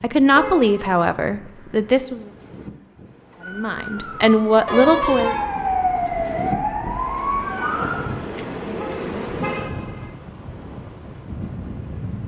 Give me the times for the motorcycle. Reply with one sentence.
The motorcycle can't be heard in this clip.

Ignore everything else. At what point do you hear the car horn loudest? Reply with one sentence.
The volume of the car horn peaks at 5 seconds.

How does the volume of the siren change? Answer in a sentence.
The loudness of the siren goes up.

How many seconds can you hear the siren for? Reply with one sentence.
The siren can be heard for 5 seconds in total.